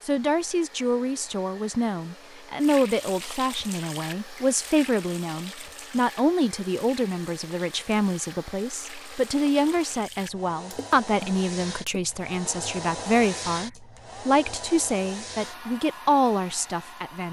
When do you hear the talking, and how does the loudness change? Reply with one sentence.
You can hear the talking from 0.0 to 17.2 s, at a steady volume.